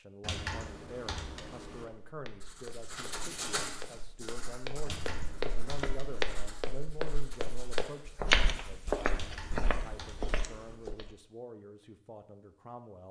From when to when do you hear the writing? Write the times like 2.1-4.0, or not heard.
2.4-9.0.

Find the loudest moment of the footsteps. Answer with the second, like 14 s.
8 s.